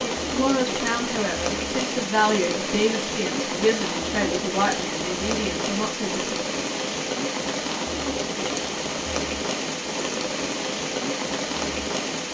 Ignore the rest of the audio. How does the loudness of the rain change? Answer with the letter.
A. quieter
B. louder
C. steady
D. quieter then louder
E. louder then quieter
C.